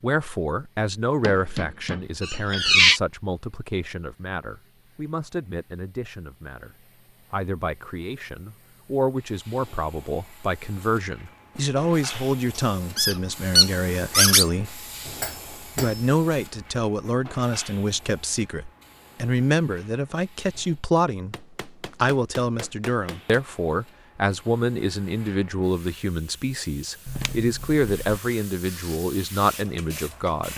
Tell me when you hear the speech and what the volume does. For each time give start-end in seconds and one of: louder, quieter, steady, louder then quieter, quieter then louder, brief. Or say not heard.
0.0-14.8 quieter then louder
15.8-30.5 steady.